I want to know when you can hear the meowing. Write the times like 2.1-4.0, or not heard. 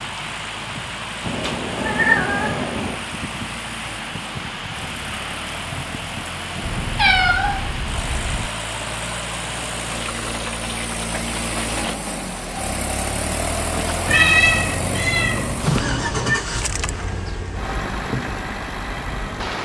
1.2-3.0, 6.6-8.5, 14.1-16.4.